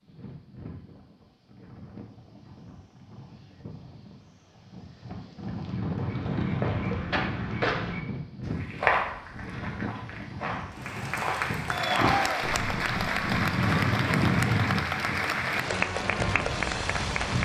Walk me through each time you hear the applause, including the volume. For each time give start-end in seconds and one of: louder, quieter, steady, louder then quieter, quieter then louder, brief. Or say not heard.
10.8-17.4 steady.